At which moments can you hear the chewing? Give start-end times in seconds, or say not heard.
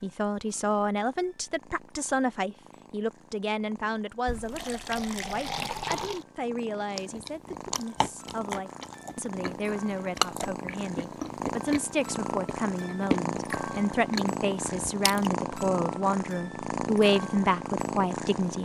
7.0-15.3.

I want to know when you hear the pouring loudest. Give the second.
6 s.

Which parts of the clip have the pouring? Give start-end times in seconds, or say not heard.
4.2-6.2.